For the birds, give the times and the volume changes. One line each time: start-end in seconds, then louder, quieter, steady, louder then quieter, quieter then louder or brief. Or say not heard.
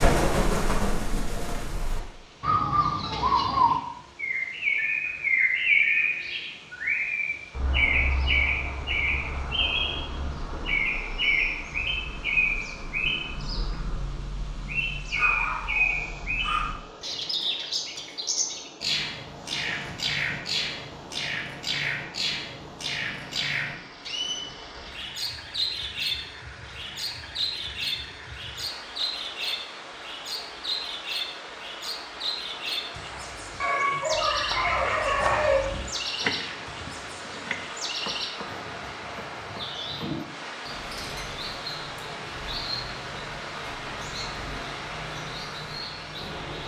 0.0-46.6 quieter.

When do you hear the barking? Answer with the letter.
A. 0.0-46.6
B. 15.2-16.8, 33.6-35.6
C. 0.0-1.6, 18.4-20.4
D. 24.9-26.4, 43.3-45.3
B.